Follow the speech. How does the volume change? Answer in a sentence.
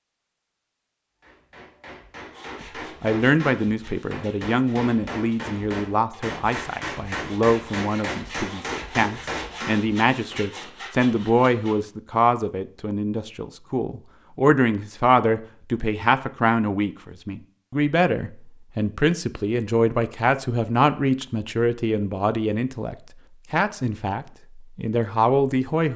The loudness of the speech stays about the same.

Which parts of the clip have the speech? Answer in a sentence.
You can hear the speech from 2.6 to 25.9 s.